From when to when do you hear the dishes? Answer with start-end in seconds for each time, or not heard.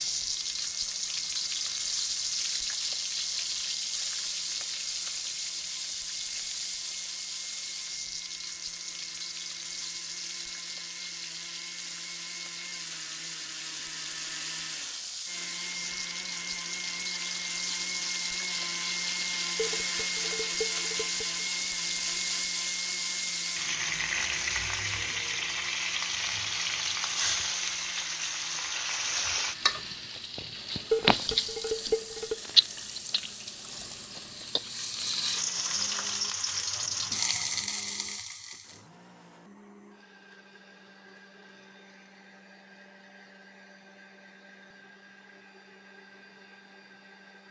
19.6-21.4, 30.9-32.4.